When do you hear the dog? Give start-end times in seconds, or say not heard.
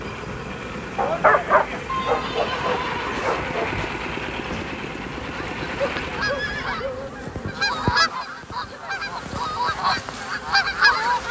0.9-3.7, 5.8-7.1.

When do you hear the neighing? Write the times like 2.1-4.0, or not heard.
1.9-3.9, 6.2-7.7.